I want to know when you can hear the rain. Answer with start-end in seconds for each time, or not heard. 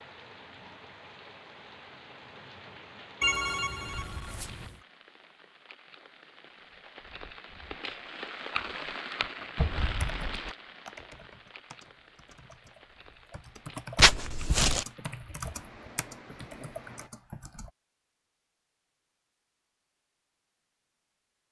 0.0-17.1.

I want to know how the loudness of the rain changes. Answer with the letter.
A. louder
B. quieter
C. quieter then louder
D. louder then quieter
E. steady
D.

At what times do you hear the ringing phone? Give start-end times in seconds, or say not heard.
3.2-4.8.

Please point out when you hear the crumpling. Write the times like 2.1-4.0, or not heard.
13.9-14.8.